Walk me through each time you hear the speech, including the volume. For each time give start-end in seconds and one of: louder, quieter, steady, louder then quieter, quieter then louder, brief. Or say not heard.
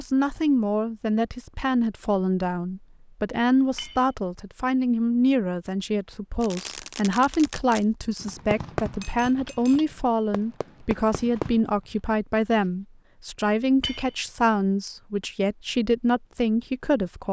0.0-17.2 steady.